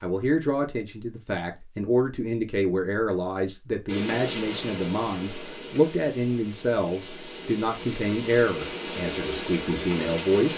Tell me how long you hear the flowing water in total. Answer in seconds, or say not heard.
7 s.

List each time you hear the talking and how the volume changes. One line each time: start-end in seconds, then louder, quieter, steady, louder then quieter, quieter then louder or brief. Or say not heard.
0.0-10.5 steady.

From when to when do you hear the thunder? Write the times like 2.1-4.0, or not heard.
not heard.